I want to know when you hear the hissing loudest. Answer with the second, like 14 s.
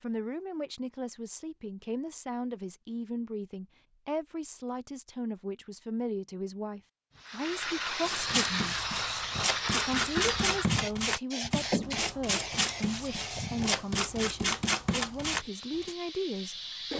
10 s.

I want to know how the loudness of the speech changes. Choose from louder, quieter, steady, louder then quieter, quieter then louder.
steady.